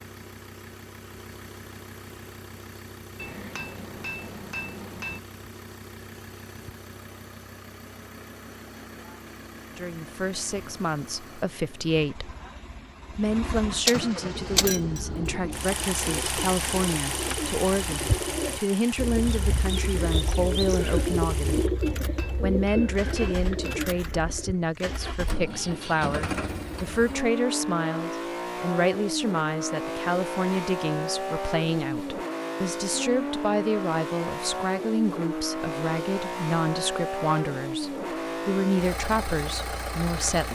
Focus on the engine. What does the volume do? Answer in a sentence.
The loudness of the engine goes up.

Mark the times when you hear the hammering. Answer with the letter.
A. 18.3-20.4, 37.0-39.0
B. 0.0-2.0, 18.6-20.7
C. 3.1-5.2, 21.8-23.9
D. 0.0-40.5
C.